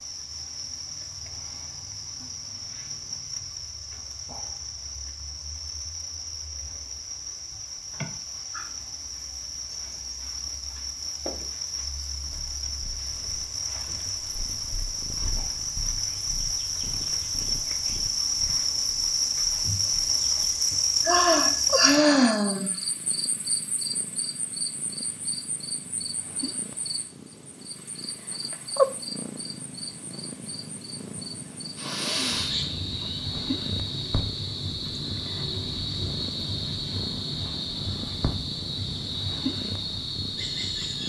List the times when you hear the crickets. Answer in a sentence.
You can hear the crickets from 0.0 to 41.0 s.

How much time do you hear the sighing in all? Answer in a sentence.
You can hear the sighing for 4 seconds altogether.